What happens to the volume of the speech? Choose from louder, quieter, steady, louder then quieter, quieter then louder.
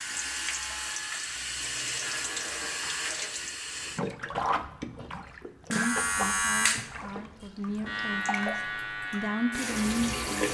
louder.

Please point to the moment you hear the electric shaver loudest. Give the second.
6 s.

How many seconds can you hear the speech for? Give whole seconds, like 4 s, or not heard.
5 s.